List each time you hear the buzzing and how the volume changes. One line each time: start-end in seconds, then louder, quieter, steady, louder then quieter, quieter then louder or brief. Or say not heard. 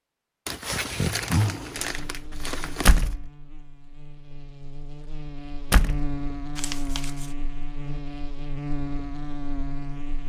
1.8-10.2 louder.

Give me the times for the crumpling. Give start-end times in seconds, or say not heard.
0.5-3.1, 6.5-7.3.